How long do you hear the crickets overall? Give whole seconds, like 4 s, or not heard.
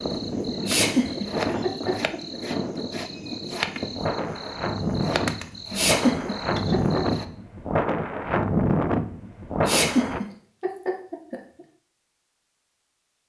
7 s.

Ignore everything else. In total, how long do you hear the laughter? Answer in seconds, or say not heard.
5 s.